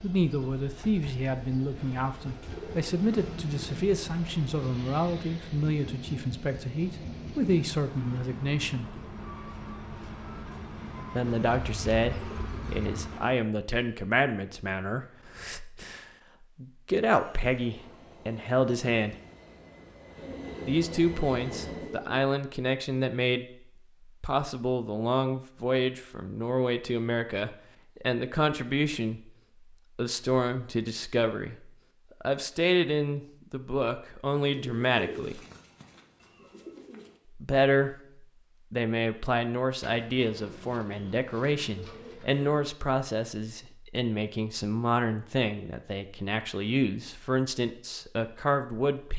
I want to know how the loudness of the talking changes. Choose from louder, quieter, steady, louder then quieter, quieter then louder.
steady.